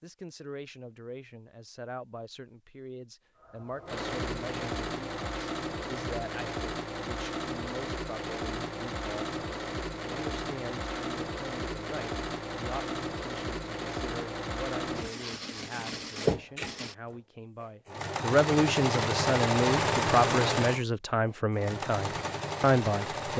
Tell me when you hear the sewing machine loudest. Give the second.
20 s.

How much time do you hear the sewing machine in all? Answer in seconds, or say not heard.
20 s.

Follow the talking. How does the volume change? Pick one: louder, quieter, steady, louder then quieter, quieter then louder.
louder.